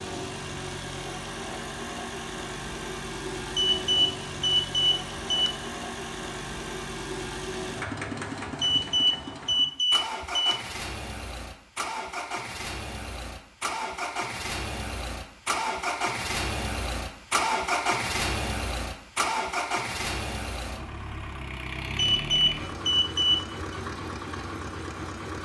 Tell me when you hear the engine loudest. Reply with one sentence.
The volume of the engine peaks at 18 seconds.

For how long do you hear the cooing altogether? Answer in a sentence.
You can't hear the cooing here.